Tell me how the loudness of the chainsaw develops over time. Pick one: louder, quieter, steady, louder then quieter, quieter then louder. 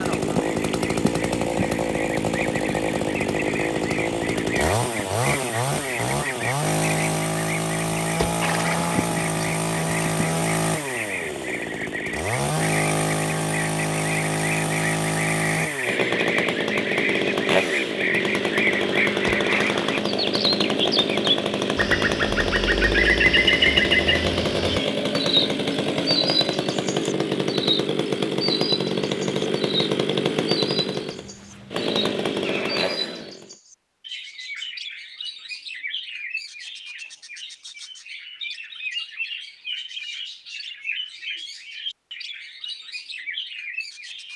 steady.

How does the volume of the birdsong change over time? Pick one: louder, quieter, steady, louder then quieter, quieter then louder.
louder then quieter.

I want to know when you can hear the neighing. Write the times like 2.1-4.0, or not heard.
8.2-9.4, 19.2-20.1, 32.4-33.4.